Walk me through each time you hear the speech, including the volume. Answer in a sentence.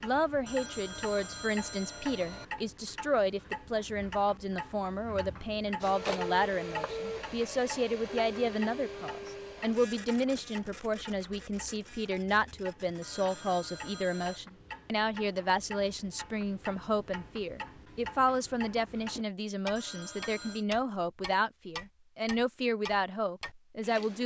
You can hear the speech from 0.0 to 24.2 s, at a steady volume.